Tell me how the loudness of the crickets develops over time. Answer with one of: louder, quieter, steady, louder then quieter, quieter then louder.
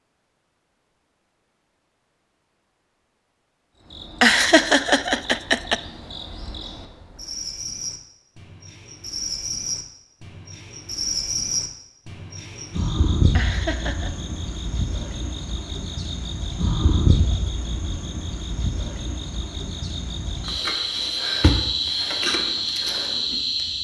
louder.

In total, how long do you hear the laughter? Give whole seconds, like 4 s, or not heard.
2 s.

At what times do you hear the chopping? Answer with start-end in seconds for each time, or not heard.
not heard.